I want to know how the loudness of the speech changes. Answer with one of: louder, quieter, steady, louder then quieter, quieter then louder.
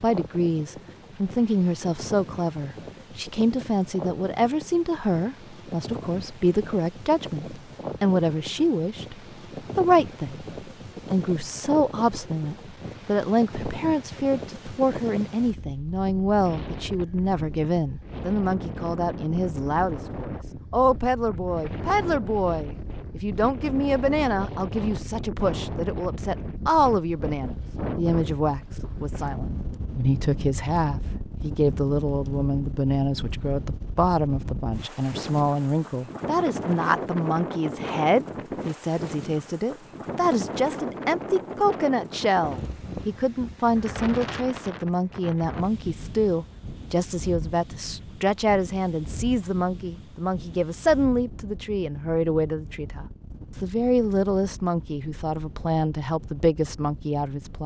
steady.